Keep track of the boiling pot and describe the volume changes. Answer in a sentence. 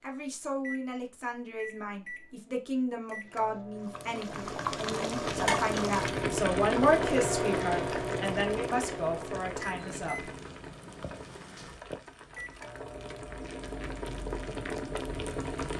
The volume of the boiling pot goes down, then up.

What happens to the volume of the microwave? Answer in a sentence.
The volume of the microwave goes up, then down.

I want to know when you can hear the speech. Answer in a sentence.
You can hear the speech from 0.0 to 10.3 s.